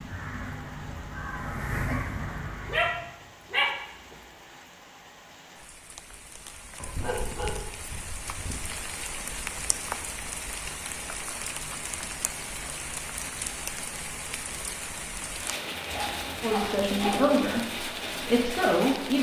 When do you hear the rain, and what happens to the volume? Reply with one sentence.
You can hear the rain from 0.0 to 19.1 s, getting louder.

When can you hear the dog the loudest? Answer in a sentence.
The loudest moment of the dog is at 4 seconds.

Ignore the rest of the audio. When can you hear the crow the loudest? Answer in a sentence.
The volume of the crow peaks at 2 seconds.